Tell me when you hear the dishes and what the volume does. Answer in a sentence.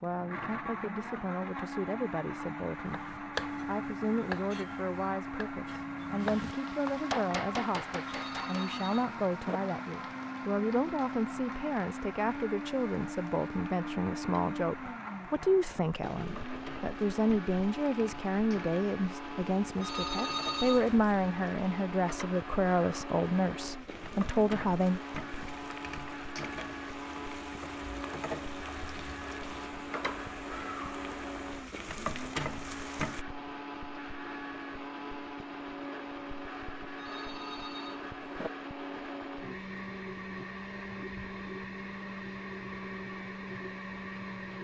You can't hear the dishes here.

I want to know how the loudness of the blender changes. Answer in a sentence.
The volume of the blender stays about the same.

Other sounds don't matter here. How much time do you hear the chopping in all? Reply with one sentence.
The chopping can be heard for 6 seconds in total.